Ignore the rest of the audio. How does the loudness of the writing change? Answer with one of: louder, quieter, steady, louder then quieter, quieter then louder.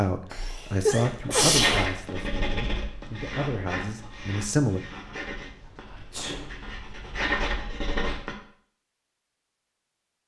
quieter then louder.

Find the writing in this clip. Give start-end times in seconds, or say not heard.
1.0-8.3.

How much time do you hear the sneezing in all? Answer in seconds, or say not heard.
2 s.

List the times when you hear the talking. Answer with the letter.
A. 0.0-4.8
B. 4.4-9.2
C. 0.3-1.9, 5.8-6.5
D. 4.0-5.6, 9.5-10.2
A.